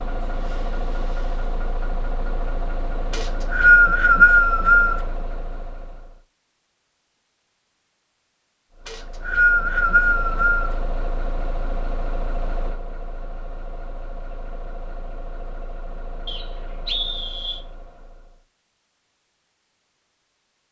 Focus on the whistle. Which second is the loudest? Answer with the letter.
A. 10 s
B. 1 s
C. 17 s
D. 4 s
D.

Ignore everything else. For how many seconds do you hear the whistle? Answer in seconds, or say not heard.
5 s.